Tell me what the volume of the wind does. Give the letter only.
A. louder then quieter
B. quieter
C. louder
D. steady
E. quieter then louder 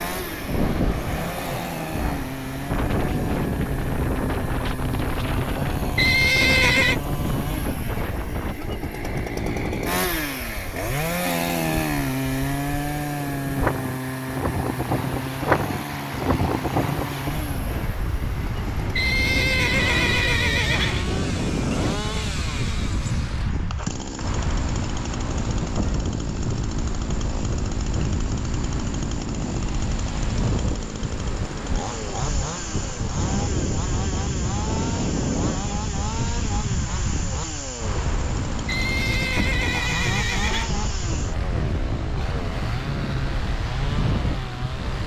D.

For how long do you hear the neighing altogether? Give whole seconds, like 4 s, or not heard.
5 s.